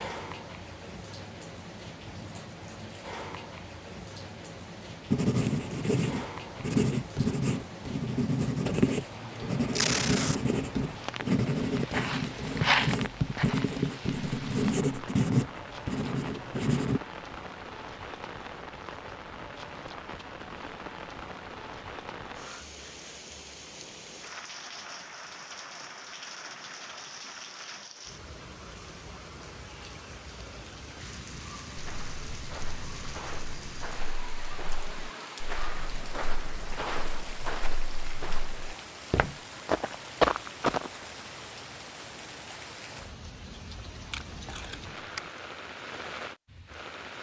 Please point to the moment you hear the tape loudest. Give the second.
10 s.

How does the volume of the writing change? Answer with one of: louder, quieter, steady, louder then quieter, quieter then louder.
steady.